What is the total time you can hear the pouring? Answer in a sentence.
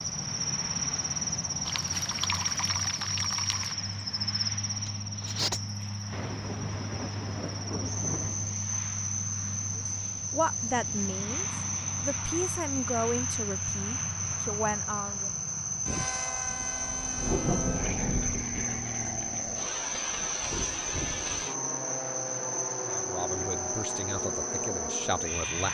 The pouring can be heard for 2 seconds in total.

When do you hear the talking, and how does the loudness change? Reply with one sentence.
You can hear the talking from 9.8 to 15.3 s, getting quieter then louder; and briefly from 22.9 to 25.6 s.